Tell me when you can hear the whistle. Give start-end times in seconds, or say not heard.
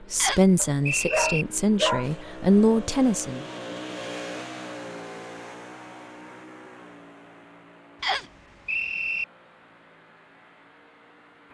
0.1-1.4, 8.0-9.2.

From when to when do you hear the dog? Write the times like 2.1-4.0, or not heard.
0.6-2.1.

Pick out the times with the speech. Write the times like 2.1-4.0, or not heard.
0.1-3.4.